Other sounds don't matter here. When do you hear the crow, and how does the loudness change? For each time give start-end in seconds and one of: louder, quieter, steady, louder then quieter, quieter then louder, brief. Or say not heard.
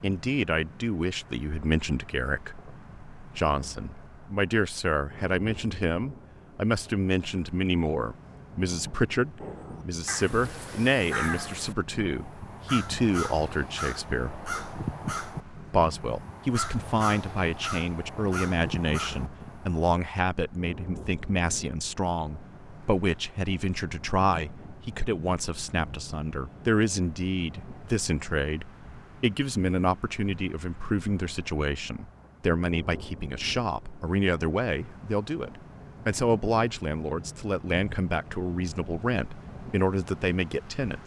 9.4-19.8 steady.